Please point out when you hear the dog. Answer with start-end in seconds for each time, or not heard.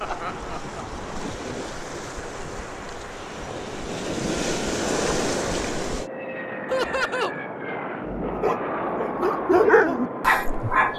8.2-10.9.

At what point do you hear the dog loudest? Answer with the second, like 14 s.
10 s.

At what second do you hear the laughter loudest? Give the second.
7 s.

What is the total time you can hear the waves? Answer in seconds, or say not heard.
6 s.